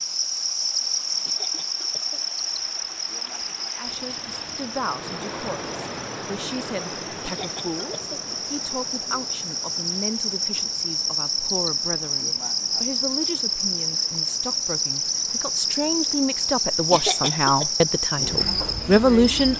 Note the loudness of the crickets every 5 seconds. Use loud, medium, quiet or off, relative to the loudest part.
loud, medium, loud, loud.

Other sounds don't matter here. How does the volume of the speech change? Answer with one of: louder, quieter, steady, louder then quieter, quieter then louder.
louder.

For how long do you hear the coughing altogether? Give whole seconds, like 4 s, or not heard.
3 s.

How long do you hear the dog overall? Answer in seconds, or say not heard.
not heard.